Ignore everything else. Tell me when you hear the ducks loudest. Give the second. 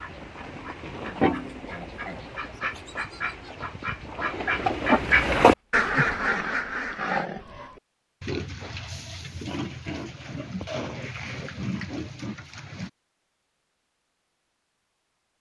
5 s.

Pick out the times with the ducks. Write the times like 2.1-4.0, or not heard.
0.0-7.3.